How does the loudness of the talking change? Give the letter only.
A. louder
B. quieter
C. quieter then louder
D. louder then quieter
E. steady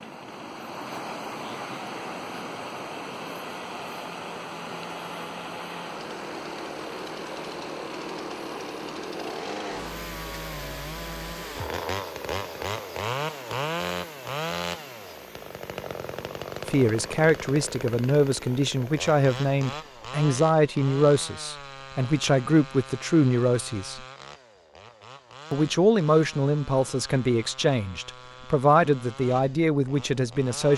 E.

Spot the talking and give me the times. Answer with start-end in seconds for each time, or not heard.
16.6-24.0, 25.5-30.7.